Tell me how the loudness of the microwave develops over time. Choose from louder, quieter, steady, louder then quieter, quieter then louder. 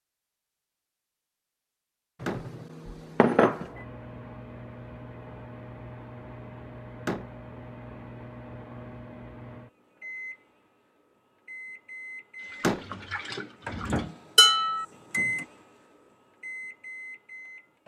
louder.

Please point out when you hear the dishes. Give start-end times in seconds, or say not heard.
2.2-3.6, 14.3-14.8.